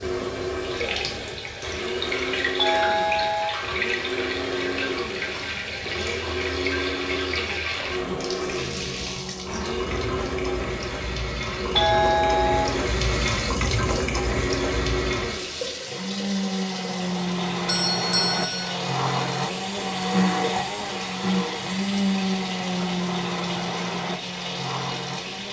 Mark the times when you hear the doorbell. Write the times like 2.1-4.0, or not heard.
2.5-3.6, 11.8-12.8, 17.6-18.8.